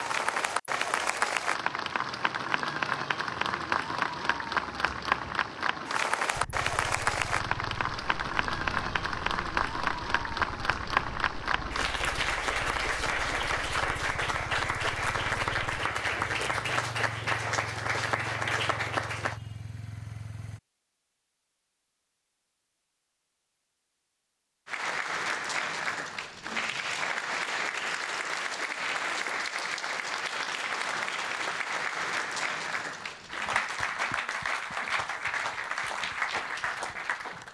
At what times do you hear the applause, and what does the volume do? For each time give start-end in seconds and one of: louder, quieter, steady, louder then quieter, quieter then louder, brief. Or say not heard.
0.0-19.4 steady
24.6-37.4 steady.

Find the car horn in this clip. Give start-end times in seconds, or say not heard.
not heard.